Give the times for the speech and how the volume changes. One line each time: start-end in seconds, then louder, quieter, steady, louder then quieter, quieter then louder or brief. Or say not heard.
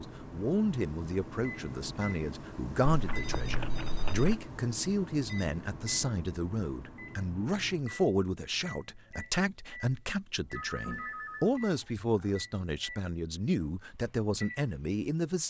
0.0-15.4 steady.